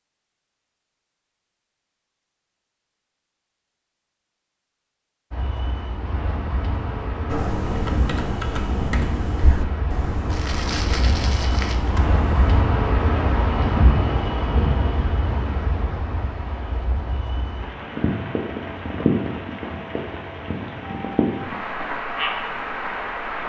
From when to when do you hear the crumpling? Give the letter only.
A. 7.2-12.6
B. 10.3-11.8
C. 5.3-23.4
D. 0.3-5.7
B.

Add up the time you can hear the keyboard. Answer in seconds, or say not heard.
5 s.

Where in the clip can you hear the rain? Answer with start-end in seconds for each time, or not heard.
5.3-23.4.